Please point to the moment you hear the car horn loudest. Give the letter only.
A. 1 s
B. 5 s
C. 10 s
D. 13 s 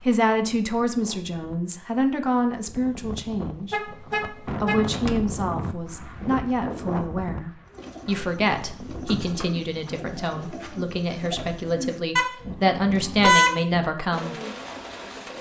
D.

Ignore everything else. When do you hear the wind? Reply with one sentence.
The wind can be heard from 0.0 to 9.4 s.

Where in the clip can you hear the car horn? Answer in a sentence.
You can hear the car horn from 3.7 to 4.8 s and from 12.2 to 13.6 s.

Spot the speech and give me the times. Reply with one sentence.
You can hear the speech from 0.0 to 14.3 s.